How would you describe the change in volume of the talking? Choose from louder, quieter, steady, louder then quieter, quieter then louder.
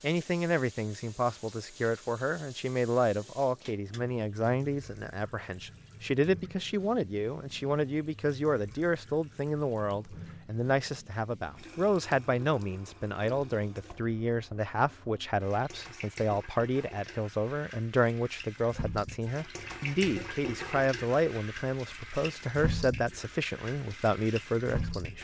steady.